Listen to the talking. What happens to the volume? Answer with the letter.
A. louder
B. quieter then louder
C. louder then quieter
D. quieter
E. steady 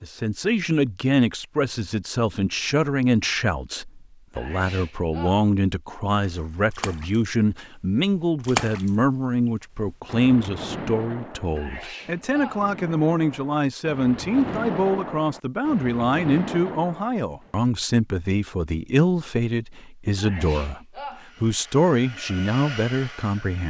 E.